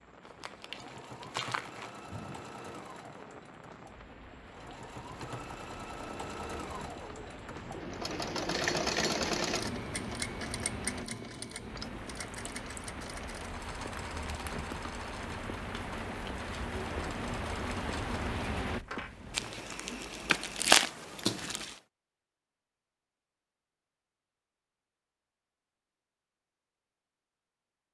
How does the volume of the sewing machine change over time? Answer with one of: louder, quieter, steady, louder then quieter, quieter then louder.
louder then quieter.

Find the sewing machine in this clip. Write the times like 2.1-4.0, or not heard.
0.0-19.8.